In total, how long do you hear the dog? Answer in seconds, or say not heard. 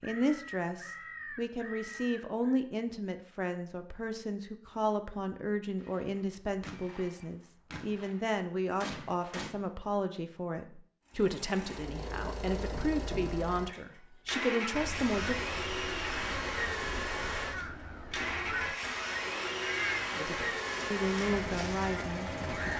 not heard.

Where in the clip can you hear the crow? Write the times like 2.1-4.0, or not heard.
0.0-2.6, 14.3-22.7.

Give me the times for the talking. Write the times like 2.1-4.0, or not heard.
0.0-15.4, 20.1-22.7.